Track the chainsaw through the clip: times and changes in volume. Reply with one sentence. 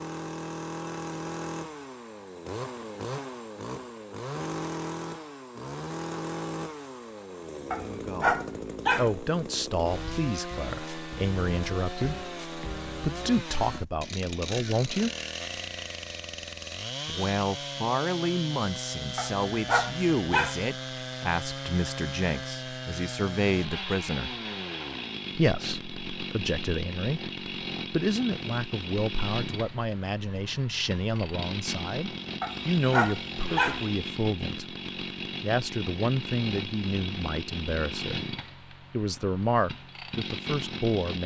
The chainsaw can be heard from 0.0 to 41.2 s, at a steady volume.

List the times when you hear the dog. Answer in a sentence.
The dog can be heard from 7.7 to 9.2 s, from 19.1 to 20.6 s and from 32.4 to 33.9 s.